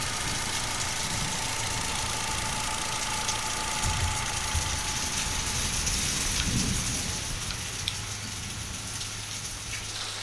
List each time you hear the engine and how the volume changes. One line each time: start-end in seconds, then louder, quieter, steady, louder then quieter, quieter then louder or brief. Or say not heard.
0.0-10.1 quieter.